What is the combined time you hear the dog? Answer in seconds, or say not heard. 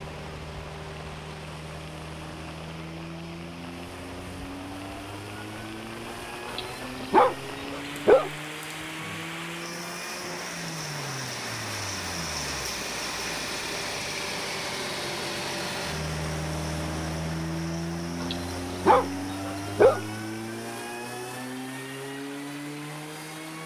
4 s.